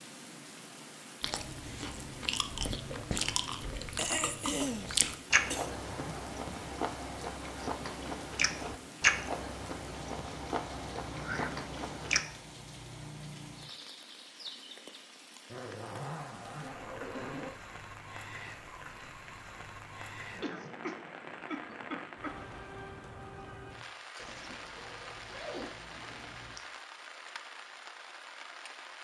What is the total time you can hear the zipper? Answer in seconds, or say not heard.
5 s.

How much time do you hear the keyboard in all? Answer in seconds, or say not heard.
not heard.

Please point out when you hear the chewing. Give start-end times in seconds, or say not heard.
1.2-12.2.